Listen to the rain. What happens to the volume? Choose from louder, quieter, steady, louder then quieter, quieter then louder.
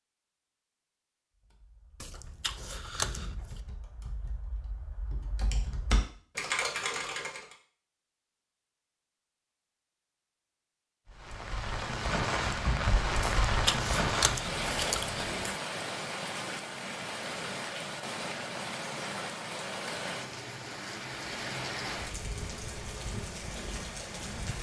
quieter.